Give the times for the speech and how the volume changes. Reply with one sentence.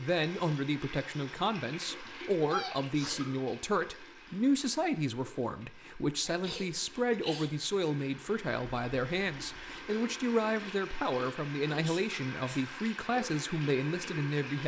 You can hear the speech from 0.0 to 14.6 s, at a steady volume.